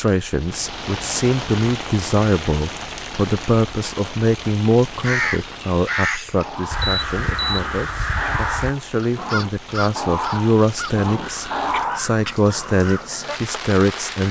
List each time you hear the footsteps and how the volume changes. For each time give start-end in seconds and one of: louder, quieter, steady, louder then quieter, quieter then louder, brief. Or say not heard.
not heard.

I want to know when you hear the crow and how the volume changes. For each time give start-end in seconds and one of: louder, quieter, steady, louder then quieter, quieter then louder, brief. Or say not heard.
5.0-13.4 quieter.